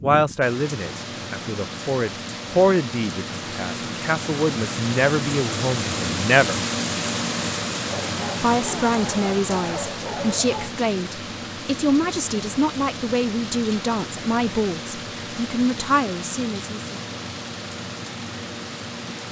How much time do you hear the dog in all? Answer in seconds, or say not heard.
3 s.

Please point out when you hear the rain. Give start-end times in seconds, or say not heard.
0.0-19.2.